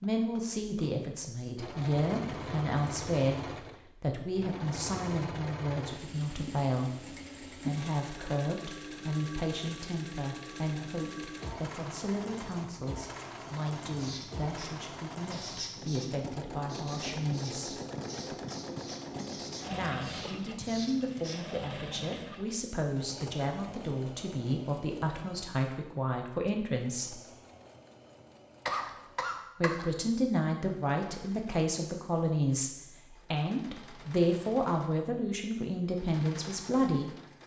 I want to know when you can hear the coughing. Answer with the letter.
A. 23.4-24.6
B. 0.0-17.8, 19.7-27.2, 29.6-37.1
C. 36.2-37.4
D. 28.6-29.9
D.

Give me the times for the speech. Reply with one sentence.
You can hear the speech from 0.0 to 17.8 s, from 19.7 to 27.2 s and from 29.6 to 37.1 s.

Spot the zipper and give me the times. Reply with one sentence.
The zipper can't be heard in this clip.